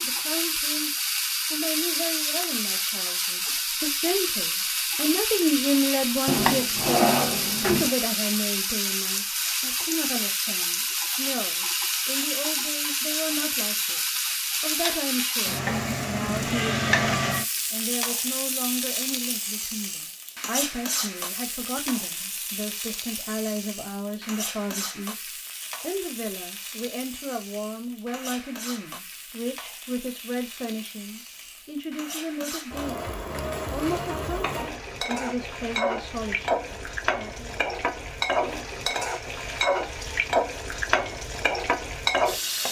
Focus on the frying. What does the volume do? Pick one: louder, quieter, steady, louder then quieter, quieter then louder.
quieter then louder.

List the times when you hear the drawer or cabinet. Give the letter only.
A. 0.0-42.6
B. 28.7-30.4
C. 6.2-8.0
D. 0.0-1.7
C.